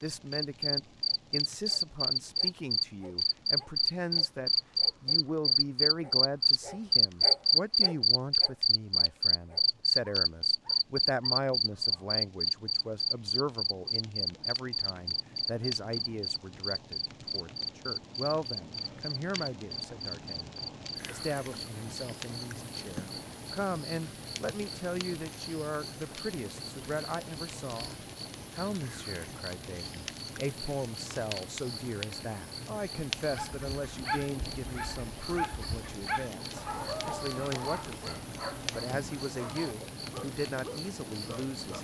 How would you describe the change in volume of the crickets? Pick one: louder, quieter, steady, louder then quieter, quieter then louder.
quieter.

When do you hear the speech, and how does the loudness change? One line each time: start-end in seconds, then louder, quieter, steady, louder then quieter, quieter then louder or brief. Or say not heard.
0.0-41.8 steady.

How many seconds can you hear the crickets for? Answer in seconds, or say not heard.
42 s.